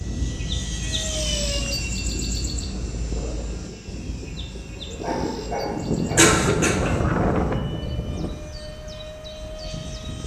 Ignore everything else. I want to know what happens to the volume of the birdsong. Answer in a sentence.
The loudness of the birdsong goes down.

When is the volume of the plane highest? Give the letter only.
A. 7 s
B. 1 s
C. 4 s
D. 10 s
A.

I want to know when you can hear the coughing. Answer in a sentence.
You can hear the coughing from 6.2 to 7.0 s.